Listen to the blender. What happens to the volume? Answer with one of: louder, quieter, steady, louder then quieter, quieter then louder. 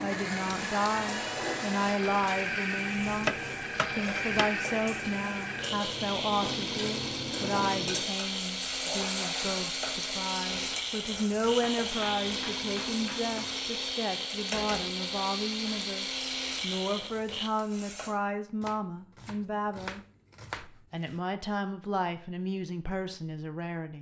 steady.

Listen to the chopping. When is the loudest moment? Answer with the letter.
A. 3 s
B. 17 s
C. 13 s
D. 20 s
A.